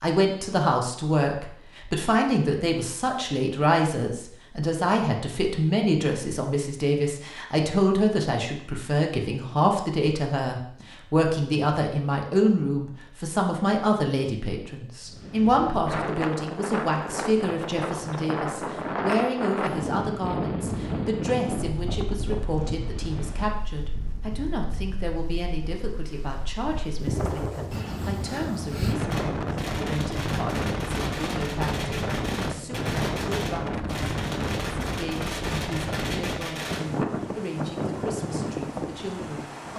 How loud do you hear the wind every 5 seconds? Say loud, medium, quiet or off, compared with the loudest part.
off, off, off, loud, loud, loud, loud, loud.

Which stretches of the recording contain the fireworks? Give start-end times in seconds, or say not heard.
29.1-36.9.